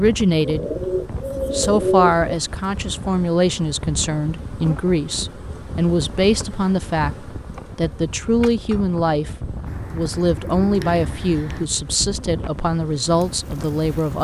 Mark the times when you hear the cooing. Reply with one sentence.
The cooing can be heard from 0.4 to 2.4 s and from 9.7 to 11.7 s.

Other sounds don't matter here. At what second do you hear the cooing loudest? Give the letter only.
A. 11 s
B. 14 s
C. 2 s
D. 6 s
C.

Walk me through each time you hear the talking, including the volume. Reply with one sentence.
The talking can be heard briefly from 0.0 to 0.7 s; and from 1.5 to 14.1 s, at a steady volume.